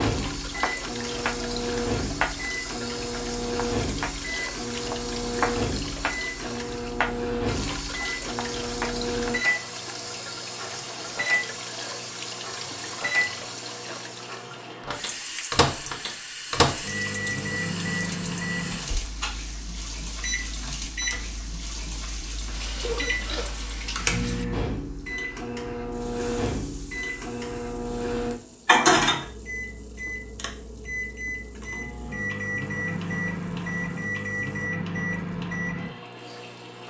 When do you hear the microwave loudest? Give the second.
29 s.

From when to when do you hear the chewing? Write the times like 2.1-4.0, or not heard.
not heard.